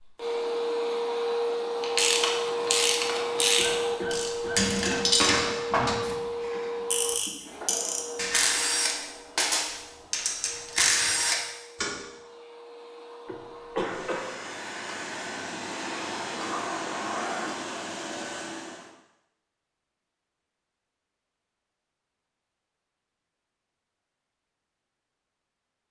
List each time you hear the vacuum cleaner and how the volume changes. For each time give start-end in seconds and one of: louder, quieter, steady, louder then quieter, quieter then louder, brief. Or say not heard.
0.0-18.9 quieter then louder.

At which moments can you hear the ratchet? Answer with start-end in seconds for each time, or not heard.
1.8-11.9.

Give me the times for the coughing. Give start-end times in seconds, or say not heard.
3.5-5.3, 13.2-14.3.